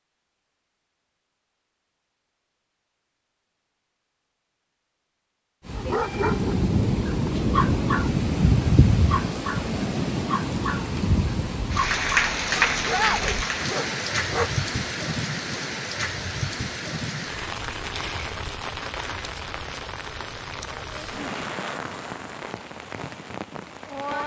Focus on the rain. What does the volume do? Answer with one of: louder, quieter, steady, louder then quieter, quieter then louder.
quieter.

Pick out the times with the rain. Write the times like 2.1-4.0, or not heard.
5.7-24.2.